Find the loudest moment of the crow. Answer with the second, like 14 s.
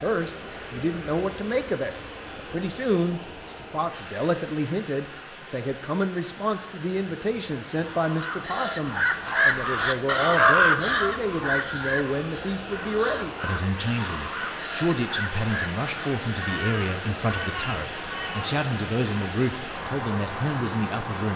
11 s.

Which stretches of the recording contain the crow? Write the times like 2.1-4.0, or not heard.
7.8-18.6.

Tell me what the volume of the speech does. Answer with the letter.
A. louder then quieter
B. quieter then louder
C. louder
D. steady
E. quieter
D.